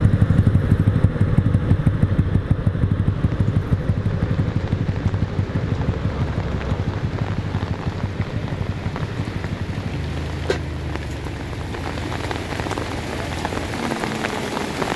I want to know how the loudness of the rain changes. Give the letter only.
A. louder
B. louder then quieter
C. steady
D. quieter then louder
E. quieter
A.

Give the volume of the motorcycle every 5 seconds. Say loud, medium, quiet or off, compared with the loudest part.
loud, medium, quiet.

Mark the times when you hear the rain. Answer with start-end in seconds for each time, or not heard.
3.0-14.9.